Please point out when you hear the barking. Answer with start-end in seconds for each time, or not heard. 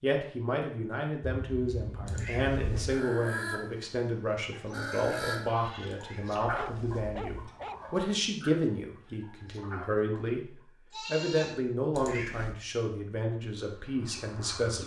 6.5-7.8.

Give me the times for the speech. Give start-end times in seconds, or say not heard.
0.0-14.8.